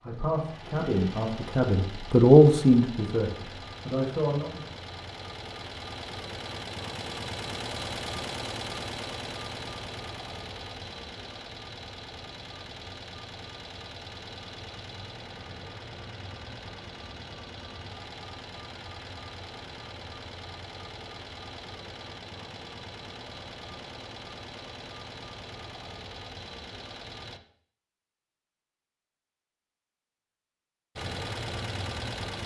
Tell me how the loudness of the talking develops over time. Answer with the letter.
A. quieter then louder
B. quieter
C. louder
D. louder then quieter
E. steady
D.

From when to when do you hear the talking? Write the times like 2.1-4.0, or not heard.
0.0-4.6.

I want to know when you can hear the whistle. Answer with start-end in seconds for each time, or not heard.
not heard.